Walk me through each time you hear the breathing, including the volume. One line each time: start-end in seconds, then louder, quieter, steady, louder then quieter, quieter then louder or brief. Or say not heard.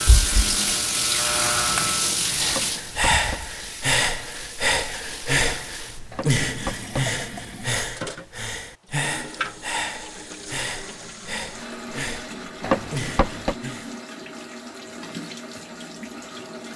2.3-13.9 quieter.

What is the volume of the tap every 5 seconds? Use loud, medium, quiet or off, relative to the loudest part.
loud, medium, medium, medium.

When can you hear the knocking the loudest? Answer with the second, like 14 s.
13 s.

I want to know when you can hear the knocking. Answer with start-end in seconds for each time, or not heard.
2.5-3.4, 6.1-7.2, 12.6-13.6.